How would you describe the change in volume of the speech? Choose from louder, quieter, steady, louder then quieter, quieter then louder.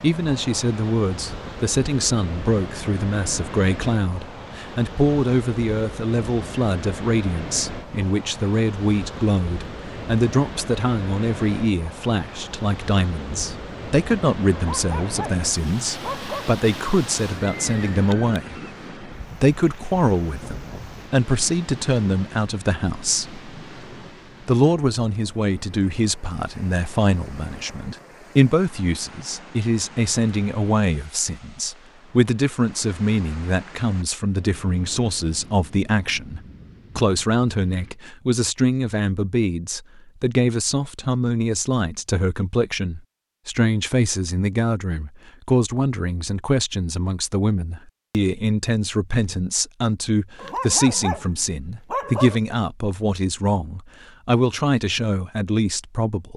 steady.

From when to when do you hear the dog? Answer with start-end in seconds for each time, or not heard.
14.6-16.5, 50.4-52.4.